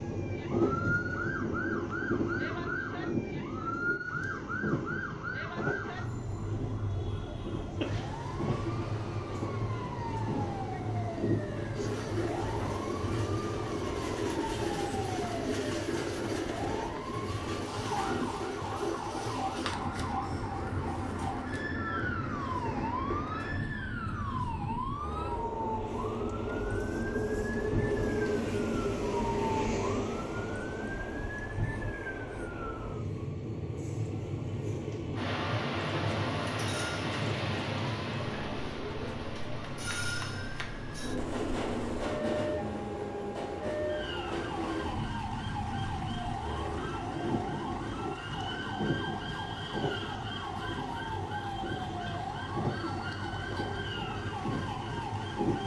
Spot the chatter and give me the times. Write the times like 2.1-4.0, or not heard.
not heard.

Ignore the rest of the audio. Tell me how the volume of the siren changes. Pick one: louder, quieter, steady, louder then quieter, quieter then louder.
steady.